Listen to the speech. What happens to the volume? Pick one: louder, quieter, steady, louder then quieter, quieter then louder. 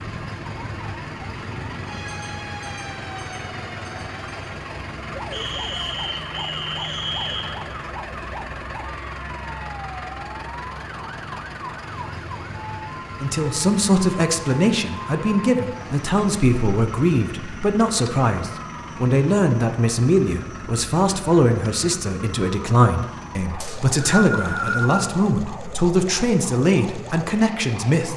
steady.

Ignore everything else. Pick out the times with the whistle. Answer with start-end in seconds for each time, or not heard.
5.3-7.5, 23.6-25.1.